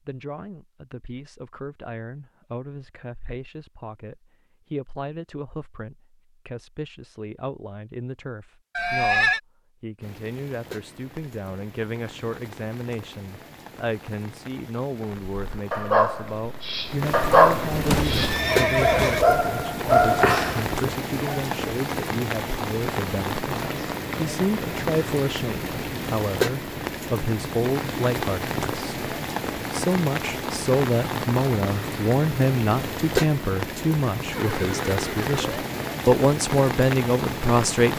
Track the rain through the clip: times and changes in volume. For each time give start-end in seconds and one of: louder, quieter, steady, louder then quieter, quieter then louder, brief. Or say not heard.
10.0-37.9 louder.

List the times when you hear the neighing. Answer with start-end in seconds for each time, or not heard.
8.8-9.4, 17.7-19.2, 34.3-35.6.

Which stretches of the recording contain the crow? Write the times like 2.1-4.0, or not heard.
not heard.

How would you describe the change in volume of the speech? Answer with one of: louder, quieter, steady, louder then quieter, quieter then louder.
louder.